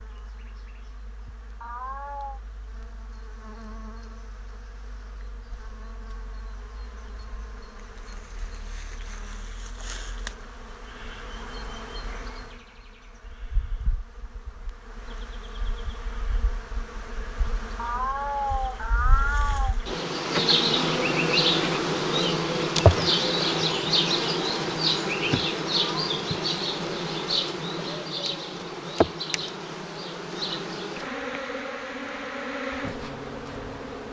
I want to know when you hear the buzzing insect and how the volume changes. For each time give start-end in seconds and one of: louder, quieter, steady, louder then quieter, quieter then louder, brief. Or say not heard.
0.0-34.0 louder then quieter.